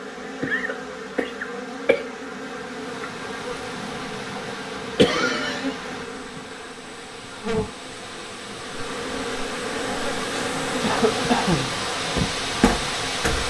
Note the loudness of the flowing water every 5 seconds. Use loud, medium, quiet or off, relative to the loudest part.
medium, medium, loud.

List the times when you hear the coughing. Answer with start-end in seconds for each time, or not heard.
0.4-2.0, 5.0-5.8, 10.8-11.8.